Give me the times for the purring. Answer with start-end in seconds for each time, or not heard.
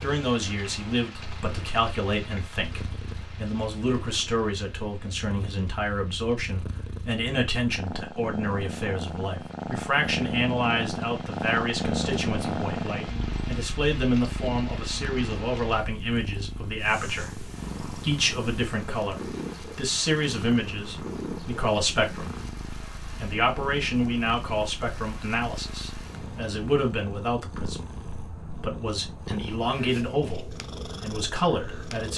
0.0-32.1.